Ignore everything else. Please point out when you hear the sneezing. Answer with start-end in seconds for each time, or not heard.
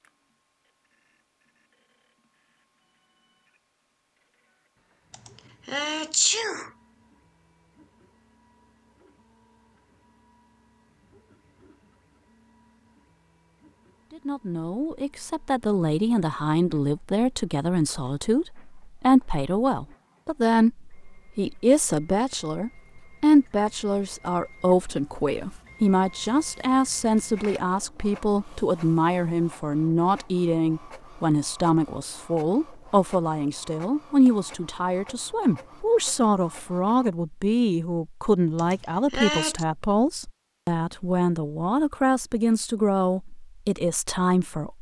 5.1-6.7, 38.5-39.6.